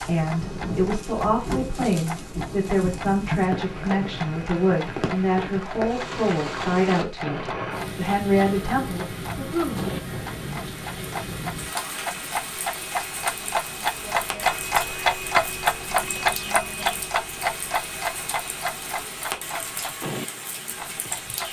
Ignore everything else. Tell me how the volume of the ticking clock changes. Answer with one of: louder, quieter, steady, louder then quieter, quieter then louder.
louder then quieter.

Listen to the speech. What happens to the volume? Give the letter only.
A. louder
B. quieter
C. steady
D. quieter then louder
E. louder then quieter
C.